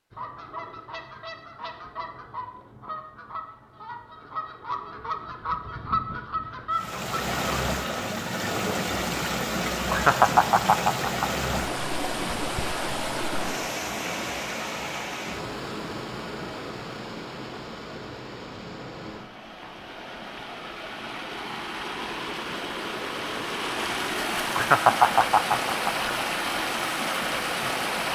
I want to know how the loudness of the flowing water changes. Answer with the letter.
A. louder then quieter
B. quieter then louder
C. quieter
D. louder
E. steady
B.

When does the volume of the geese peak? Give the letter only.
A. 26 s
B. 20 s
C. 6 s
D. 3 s
C.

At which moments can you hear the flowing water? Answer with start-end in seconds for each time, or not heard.
6.7-28.1.